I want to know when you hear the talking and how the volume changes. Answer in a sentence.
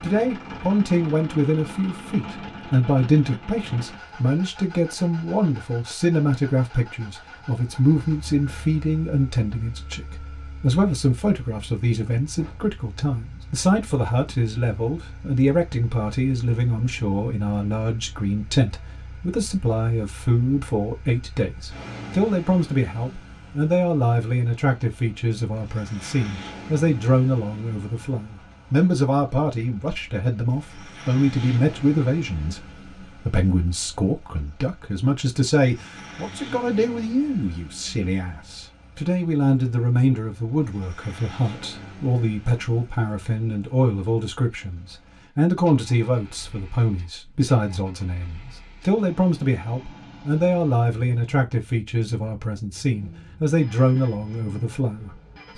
You can hear the talking from 0.0 to 55.5 s, at a steady volume.